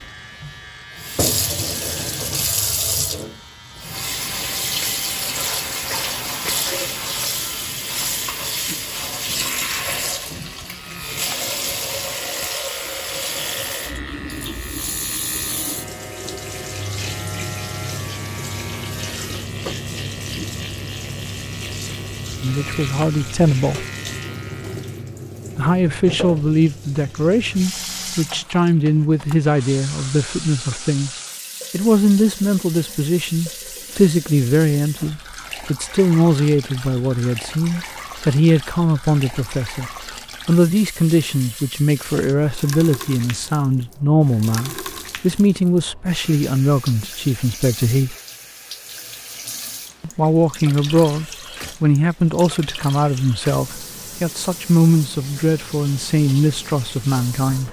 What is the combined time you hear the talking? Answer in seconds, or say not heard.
31 s.